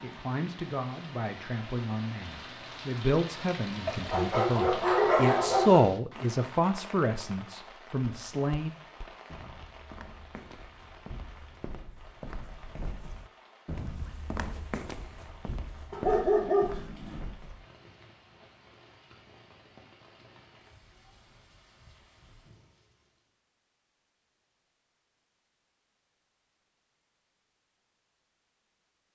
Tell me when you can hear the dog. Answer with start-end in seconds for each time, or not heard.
3.9-5.9, 15.9-17.2.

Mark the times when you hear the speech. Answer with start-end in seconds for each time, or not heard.
0.0-8.7.